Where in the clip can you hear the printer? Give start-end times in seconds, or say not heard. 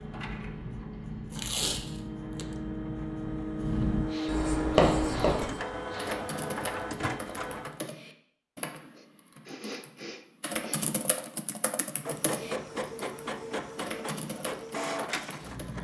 0.0-7.8, 12.0-15.8.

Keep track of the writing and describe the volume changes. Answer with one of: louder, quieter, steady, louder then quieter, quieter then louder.
louder.